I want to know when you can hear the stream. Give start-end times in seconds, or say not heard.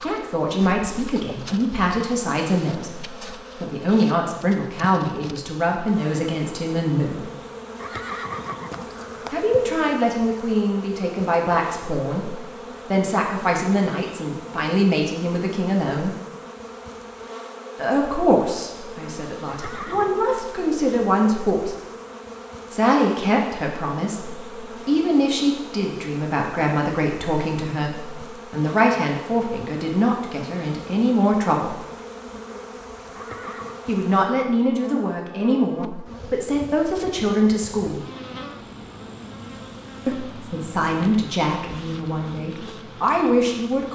not heard.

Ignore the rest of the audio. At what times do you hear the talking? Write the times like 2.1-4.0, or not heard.
0.0-7.3, 9.3-16.1, 17.8-21.8, 22.7-31.8, 33.9-38.0, 40.0-43.9.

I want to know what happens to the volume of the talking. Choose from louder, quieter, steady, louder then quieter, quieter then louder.
steady.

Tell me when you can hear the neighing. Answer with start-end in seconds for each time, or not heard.
7.8-9.7, 19.4-20.2, 33.1-33.8.